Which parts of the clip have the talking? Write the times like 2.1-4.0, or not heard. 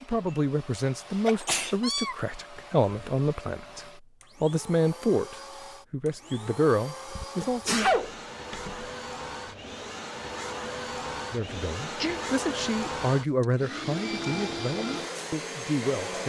0.0-7.8, 11.3-16.2.